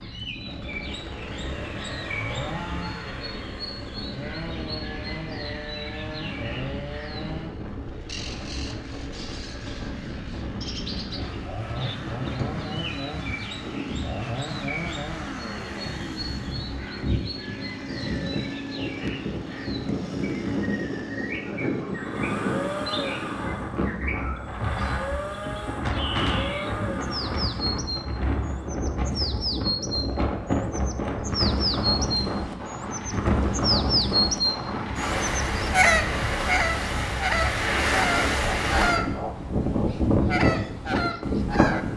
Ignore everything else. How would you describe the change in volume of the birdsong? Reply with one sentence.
The volume of the birdsong goes up.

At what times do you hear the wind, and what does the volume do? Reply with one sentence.
You can hear the wind from 0.0 to 41.9 s, getting louder.